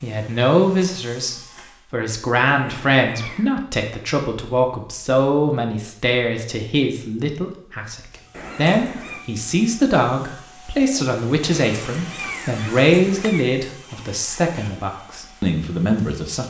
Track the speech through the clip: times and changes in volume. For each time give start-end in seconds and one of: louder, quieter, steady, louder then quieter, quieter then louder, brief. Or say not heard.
0.0-16.4 steady.